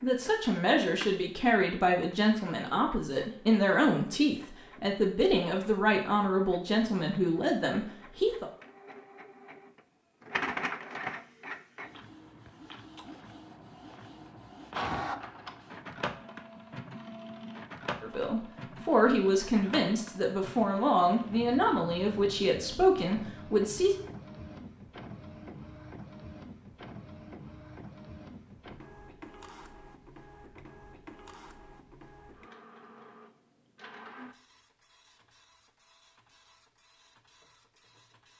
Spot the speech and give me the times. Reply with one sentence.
The speech can be heard from 0.0 to 8.4 s and from 18.0 to 23.9 s.